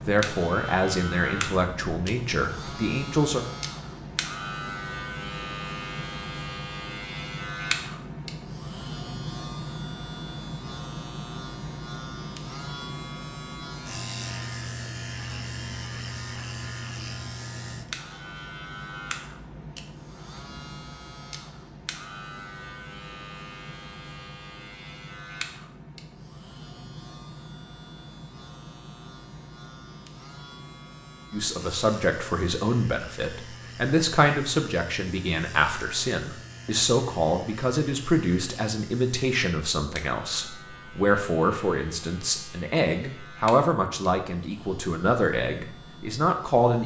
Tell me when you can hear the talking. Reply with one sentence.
The talking can be heard from 0.1 to 3.5 s and from 31.3 to 46.8 s.